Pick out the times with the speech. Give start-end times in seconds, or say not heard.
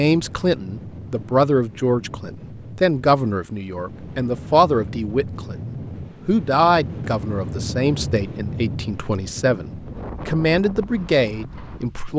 0.0-5.5, 6.2-12.1.